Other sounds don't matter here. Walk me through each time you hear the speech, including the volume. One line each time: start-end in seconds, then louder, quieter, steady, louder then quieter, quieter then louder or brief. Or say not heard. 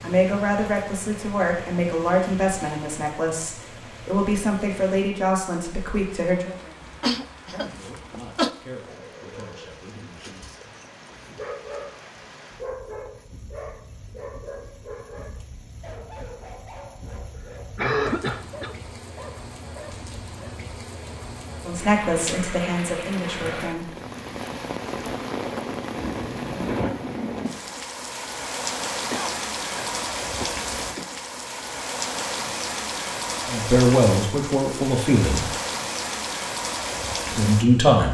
0.0-10.4 quieter
21.6-23.9 brief
33.5-35.5 brief
37.3-38.0 brief.